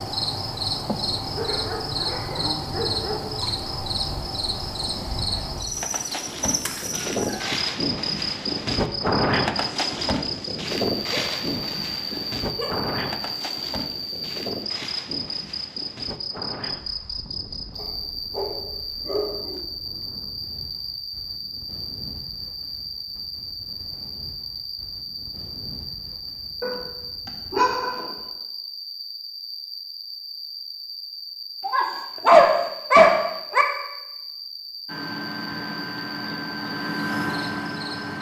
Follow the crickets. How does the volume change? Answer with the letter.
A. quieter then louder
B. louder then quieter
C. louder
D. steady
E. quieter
E.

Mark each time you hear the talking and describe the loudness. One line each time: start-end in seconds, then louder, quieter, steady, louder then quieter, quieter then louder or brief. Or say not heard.
not heard.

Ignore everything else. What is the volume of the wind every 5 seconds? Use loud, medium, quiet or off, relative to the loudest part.
quiet, loud, loud, quiet, quiet, quiet, off, off.